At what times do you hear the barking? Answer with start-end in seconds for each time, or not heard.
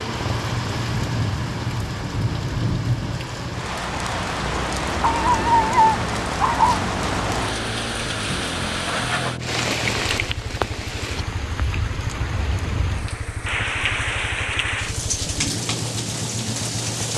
5.0-6.8.